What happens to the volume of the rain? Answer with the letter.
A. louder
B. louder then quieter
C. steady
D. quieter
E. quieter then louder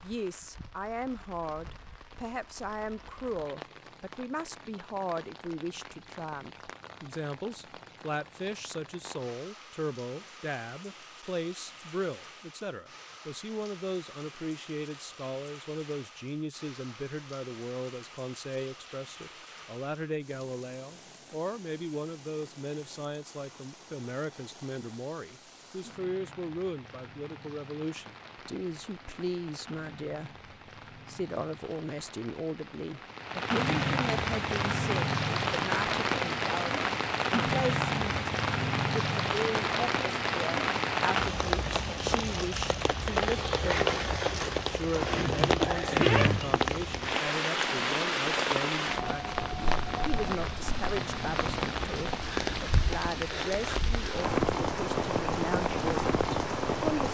A.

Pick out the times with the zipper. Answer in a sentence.
You can hear the zipper from 45.1 to 46.6 s.